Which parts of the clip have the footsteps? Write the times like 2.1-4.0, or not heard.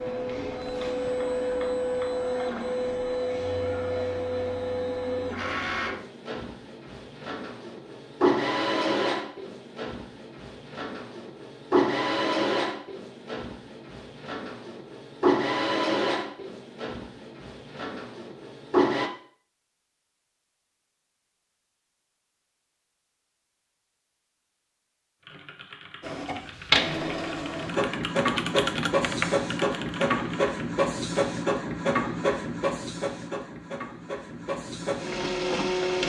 not heard.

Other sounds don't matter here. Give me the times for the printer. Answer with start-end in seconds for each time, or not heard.
0.0-19.1, 26.0-36.0.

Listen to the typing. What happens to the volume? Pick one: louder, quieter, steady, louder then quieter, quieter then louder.
louder then quieter.